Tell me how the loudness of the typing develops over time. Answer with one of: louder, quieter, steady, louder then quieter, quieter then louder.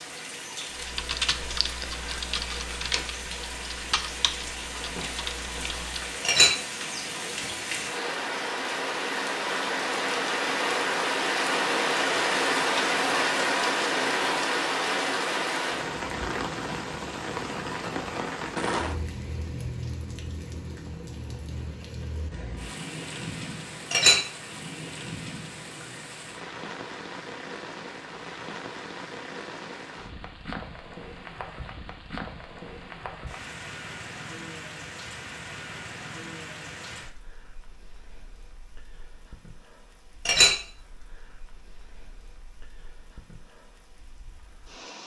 quieter.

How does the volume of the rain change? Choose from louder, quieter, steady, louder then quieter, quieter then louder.
louder then quieter.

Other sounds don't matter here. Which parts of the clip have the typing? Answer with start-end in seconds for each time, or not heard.
0.8-6.2.